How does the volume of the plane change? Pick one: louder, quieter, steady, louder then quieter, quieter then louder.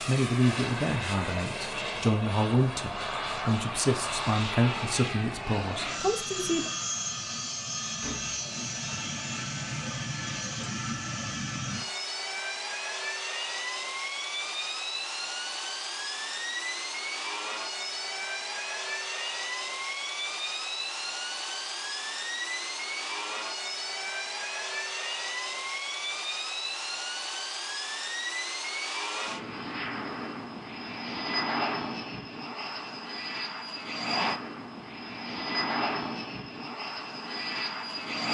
steady.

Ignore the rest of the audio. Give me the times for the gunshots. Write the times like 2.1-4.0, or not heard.
8.0-8.6.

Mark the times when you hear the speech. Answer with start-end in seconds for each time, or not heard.
0.1-6.7.